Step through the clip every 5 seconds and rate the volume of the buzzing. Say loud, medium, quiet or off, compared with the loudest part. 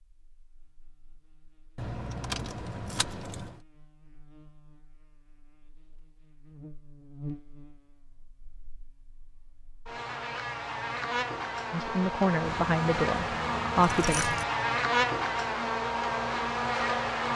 quiet, quiet, loud, loud.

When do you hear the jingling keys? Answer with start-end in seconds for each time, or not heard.
1.8-3.6, 12.4-14.4.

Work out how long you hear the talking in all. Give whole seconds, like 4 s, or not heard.
3 s.